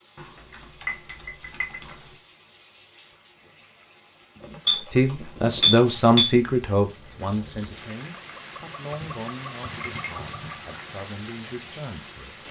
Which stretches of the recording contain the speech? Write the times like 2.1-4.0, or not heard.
4.9-12.4.